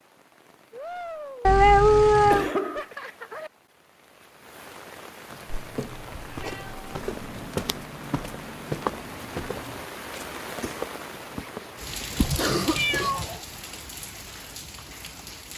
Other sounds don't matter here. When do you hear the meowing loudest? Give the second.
2 s.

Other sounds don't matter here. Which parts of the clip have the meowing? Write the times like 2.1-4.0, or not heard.
1.4-2.5, 5.5-7.5, 12.2-13.4.